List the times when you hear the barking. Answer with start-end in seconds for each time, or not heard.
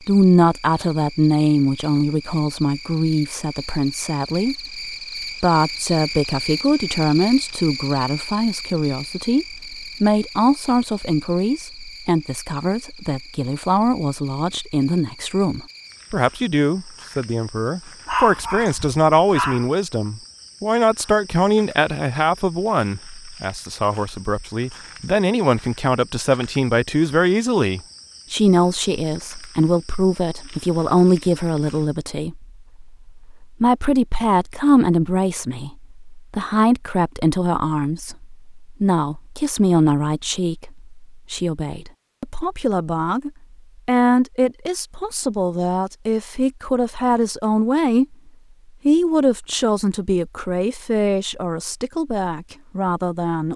18.1-19.7.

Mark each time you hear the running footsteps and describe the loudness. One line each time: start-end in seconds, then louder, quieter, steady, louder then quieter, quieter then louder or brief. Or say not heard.
not heard.